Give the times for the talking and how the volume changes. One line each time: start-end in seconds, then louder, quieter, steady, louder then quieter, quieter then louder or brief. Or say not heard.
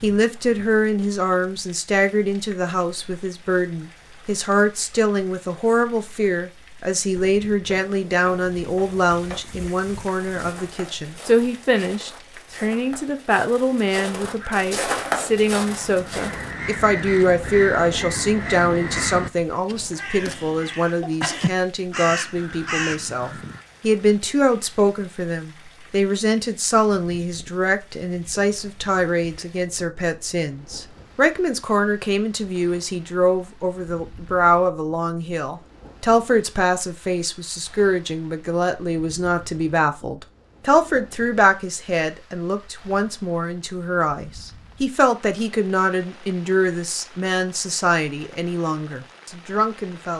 0.0-50.1 steady.